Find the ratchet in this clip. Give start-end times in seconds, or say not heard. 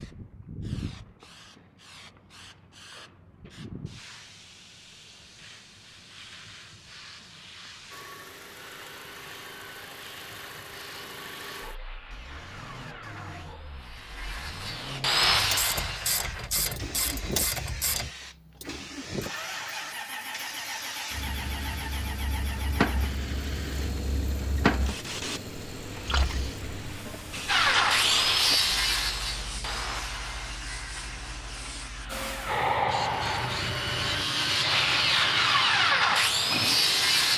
15.2-18.1.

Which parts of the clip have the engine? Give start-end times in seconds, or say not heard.
7.9-27.6, 32.0-34.2.